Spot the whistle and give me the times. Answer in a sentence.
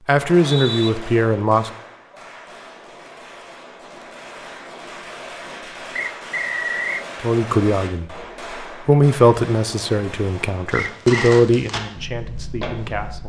The whistle can be heard from 0.1 to 0.9 s, from 6.0 to 7.0 s and from 10.9 to 11.4 s.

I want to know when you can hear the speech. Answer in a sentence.
The speech can be heard from 0.1 to 1.7 s and from 7.2 to 13.2 s.